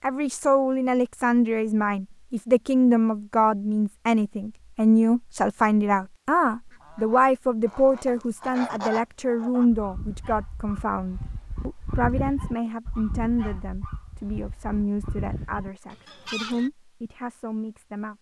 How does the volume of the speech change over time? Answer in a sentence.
The loudness of the speech goes down.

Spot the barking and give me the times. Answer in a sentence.
You can't hear the barking here.